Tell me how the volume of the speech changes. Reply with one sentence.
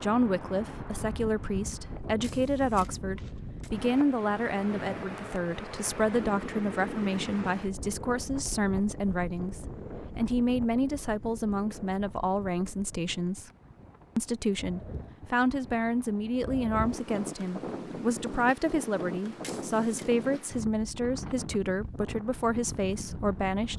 The loudness of the speech stays about the same.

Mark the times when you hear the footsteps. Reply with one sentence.
You can't hear the footsteps here.